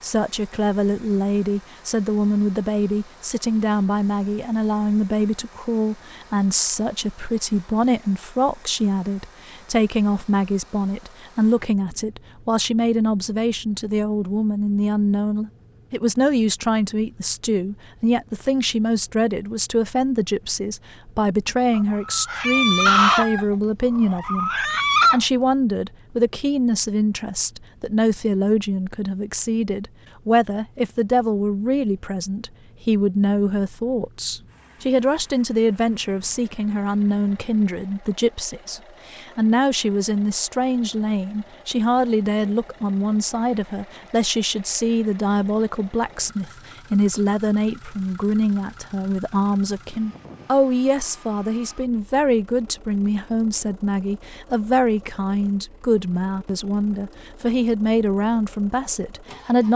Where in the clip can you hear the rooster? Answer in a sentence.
You can hear the rooster from 21.7 to 25.2 s.